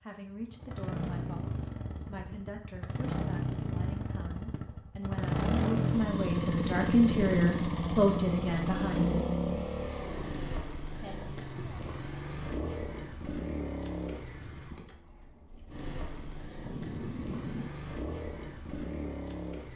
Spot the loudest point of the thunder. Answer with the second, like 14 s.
17 s.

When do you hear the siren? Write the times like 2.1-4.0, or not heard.
not heard.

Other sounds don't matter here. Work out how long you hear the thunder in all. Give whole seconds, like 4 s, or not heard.
2 s.